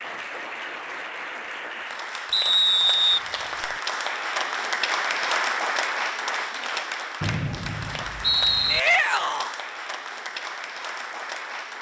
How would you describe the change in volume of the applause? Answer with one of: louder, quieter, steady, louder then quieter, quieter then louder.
louder then quieter.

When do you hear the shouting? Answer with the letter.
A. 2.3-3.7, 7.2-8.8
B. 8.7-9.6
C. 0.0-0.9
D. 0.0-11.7
B.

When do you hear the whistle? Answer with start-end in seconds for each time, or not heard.
2.3-3.7, 7.2-8.8.